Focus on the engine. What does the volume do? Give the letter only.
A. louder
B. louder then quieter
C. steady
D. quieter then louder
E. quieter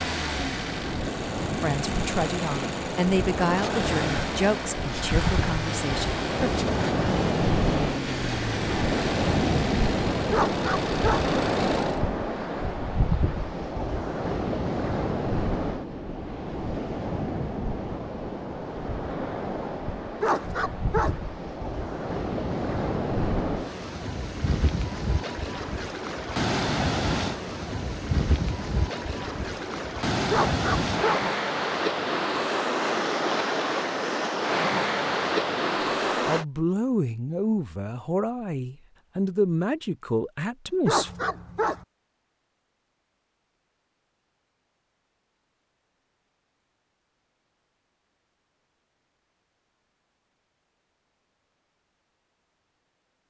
C.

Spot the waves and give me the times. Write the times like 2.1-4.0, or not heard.
0.0-36.5.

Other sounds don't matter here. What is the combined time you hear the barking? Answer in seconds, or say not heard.
4 s.